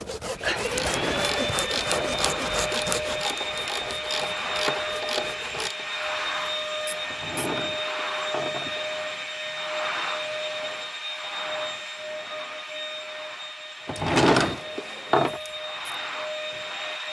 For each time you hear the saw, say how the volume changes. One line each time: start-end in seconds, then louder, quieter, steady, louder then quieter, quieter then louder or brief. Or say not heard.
0.0-5.7 quieter.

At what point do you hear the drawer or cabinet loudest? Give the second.
14 s.